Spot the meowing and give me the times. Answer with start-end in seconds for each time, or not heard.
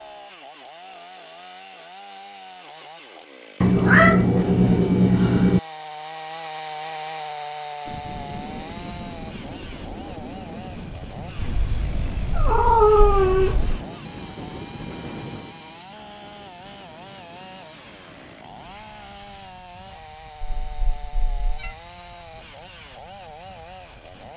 3.6-5.6, 11.3-13.8, 20.6-21.8.